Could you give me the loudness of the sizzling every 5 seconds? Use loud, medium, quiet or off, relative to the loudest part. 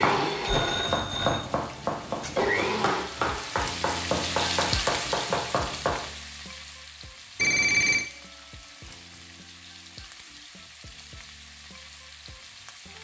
loud, medium, quiet.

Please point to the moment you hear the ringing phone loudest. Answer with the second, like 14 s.
8 s.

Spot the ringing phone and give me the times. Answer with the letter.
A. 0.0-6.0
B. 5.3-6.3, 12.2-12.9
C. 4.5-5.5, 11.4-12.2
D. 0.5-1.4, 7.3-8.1
D.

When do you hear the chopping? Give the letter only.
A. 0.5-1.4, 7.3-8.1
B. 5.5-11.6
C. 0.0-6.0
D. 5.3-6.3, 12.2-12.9
C.